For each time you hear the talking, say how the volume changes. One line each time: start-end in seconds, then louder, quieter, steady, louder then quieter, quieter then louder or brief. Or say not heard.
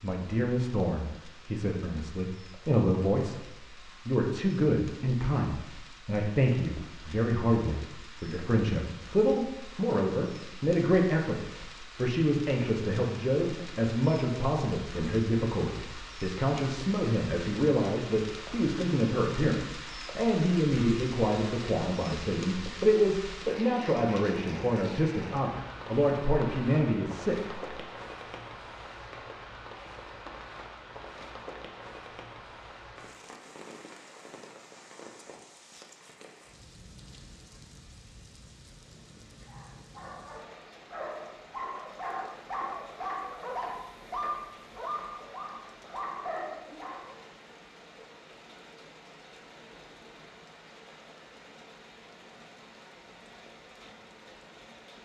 0.0-27.8 steady.